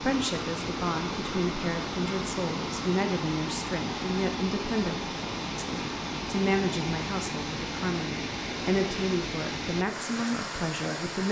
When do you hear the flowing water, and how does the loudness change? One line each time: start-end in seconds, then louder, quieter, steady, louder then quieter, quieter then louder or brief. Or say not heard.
0.0-11.2 steady.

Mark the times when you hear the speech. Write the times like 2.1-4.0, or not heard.
0.0-11.2.